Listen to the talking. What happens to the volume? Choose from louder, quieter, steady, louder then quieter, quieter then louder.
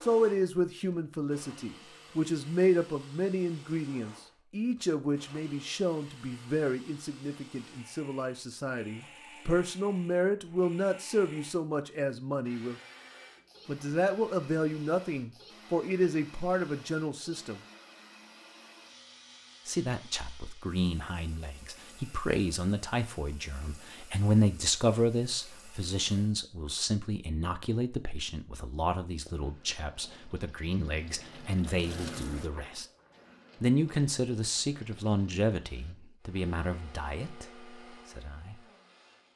steady.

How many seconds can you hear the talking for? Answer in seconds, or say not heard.
35 s.